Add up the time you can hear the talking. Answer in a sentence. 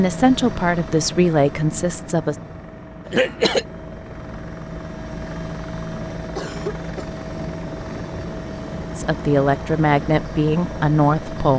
The talking can be heard for 5 seconds in total.